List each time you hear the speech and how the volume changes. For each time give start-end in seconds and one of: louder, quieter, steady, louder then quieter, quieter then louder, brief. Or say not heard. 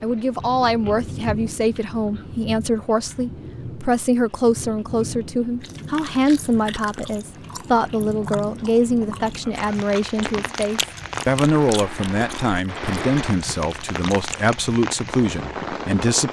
0.0-16.2 steady.